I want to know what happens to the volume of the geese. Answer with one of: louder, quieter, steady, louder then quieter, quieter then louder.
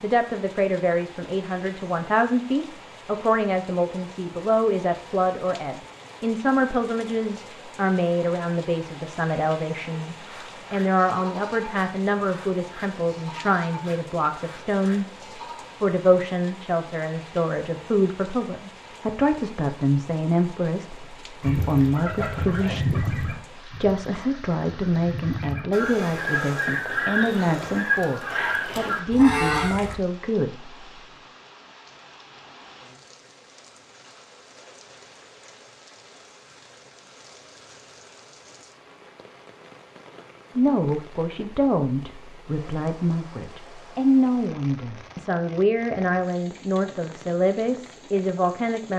quieter then louder.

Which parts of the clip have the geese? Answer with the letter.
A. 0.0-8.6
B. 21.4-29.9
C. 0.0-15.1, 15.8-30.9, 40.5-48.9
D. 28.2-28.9
B.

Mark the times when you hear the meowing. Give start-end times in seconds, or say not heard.
28.2-28.9.